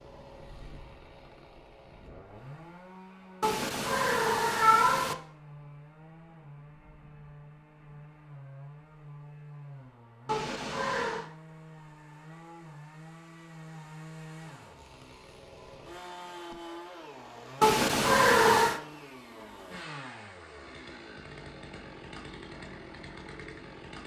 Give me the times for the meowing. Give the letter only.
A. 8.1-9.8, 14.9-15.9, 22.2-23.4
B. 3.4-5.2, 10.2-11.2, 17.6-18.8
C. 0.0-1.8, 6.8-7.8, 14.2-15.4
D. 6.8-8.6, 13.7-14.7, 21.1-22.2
B.